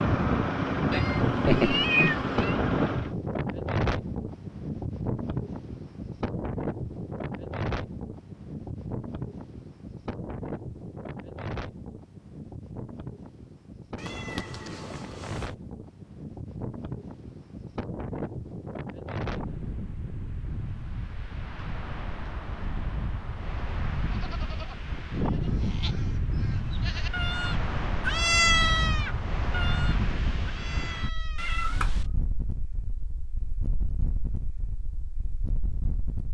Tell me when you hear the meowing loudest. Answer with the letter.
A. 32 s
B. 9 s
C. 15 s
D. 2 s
D.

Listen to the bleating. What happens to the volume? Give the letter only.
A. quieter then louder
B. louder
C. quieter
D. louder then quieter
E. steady
D.